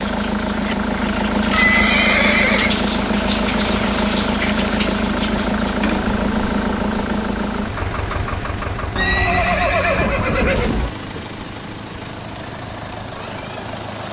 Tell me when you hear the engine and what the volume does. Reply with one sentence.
The engine can be heard from 0.0 to 14.0 s, getting quieter.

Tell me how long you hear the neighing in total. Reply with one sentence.
You can hear the neighing for 3 seconds altogether.